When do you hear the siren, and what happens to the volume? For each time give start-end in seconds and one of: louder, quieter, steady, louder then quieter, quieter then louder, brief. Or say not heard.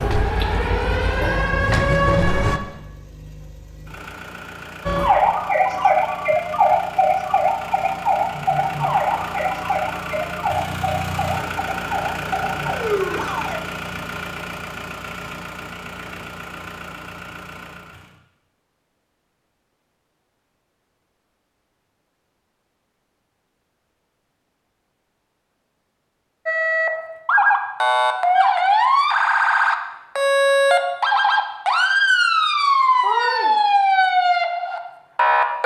0.0-2.6 brief
4.8-13.6 quieter
26.4-35.6 steady.